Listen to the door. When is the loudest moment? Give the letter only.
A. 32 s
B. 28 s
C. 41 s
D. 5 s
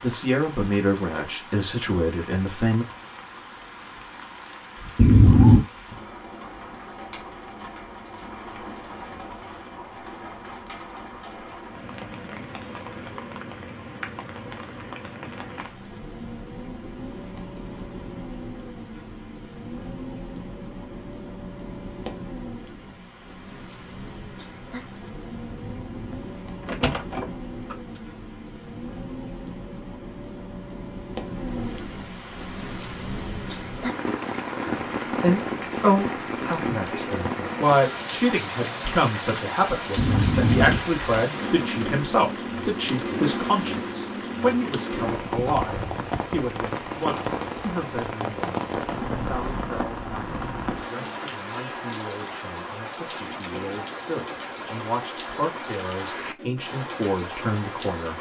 D.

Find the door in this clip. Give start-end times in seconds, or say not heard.
5.0-5.6, 25.5-27.8, 40.0-41.0.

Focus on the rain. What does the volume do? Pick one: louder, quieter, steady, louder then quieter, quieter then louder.
louder.